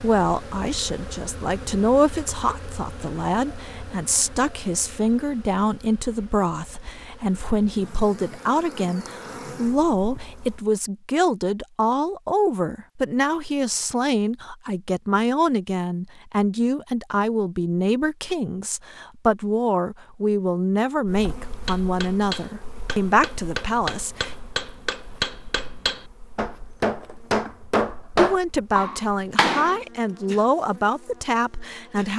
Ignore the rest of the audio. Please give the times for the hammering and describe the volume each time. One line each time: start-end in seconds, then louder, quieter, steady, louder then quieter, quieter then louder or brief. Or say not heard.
21.6-29.8 louder.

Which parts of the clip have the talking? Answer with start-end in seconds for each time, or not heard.
0.0-24.4, 28.1-32.1.